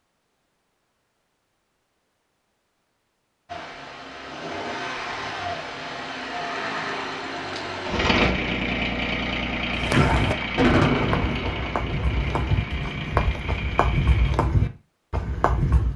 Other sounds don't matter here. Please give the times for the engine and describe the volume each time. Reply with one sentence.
The engine can be heard from 3.5 to 14.3 s, getting louder then quieter.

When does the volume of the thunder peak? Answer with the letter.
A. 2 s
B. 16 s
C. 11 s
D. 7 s
C.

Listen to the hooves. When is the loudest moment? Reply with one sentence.
The volume of the hooves peaks at 10 seconds.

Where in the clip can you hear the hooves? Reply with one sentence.
The hooves can be heard from 9.7 to 15.9 s.